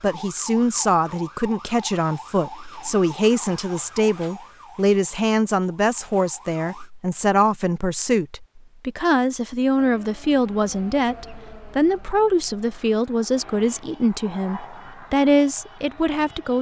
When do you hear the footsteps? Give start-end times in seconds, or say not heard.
not heard.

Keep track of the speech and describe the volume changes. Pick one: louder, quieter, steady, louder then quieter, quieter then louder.
steady.